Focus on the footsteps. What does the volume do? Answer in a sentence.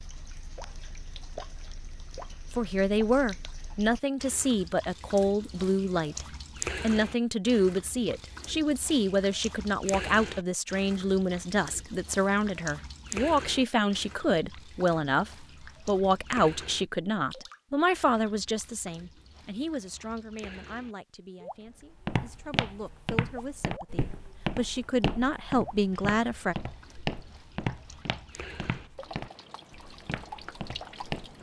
The volume of the footsteps goes down.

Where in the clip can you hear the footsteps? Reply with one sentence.
The footsteps can be heard from 22.0 to 31.3 s.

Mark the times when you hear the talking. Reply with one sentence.
The talking can be heard from 2.5 to 26.6 s.